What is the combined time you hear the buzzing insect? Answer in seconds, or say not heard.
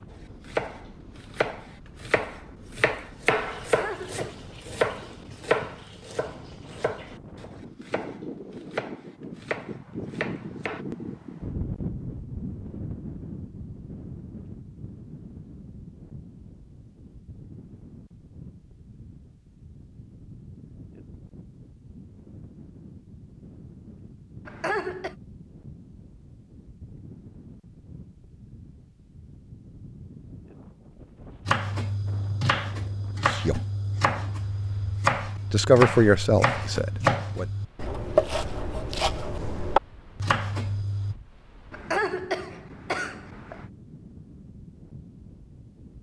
not heard.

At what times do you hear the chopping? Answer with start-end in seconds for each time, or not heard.
0.1-10.8, 31.4-41.1.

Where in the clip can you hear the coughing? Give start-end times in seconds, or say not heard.
3.6-4.3, 24.4-25.1, 41.7-43.6.